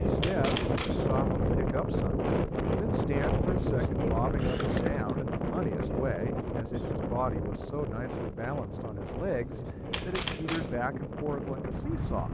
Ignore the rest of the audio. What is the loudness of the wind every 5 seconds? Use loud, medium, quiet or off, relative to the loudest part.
loud, medium, medium.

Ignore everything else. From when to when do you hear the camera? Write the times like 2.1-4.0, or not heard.
0.2-1.1, 4.3-5.1, 9.9-10.8.